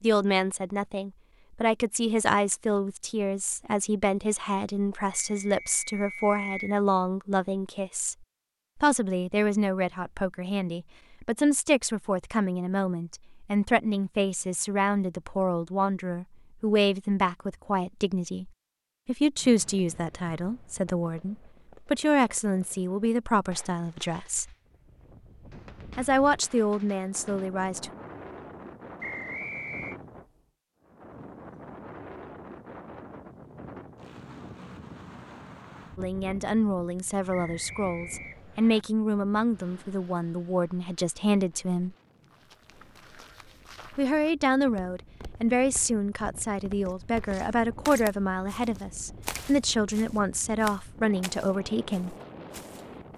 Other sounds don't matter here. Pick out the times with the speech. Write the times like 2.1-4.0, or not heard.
0.0-8.2, 8.8-24.5, 25.9-27.9, 36.0-41.9, 44.0-52.1.